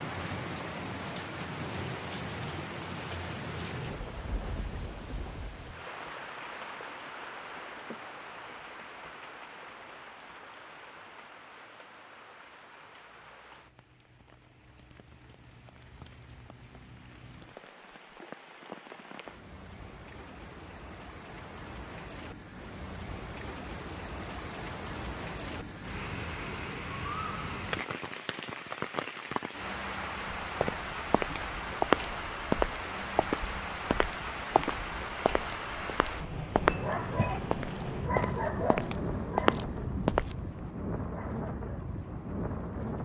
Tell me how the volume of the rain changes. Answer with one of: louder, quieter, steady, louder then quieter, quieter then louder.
quieter then louder.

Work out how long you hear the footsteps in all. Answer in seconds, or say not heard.
10 s.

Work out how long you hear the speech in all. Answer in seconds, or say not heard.
not heard.